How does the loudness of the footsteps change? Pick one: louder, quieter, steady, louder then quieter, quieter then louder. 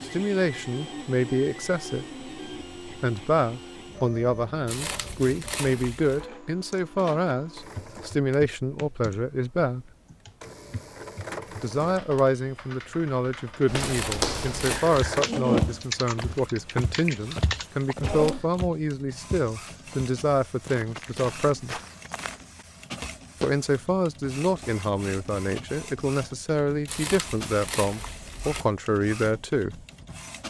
quieter.